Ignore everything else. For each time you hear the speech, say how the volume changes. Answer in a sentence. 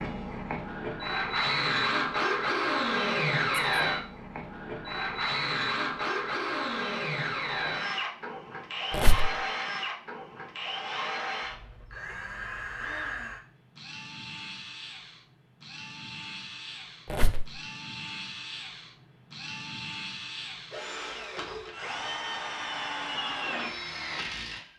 You can't hear the speech here.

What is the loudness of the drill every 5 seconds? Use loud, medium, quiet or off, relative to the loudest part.
loud, loud, medium, quiet, medium.